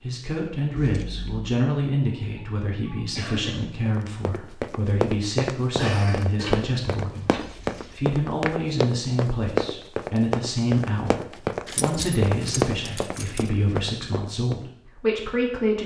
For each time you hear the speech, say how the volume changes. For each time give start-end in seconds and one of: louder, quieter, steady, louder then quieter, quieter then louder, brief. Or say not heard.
0.0-15.8 steady.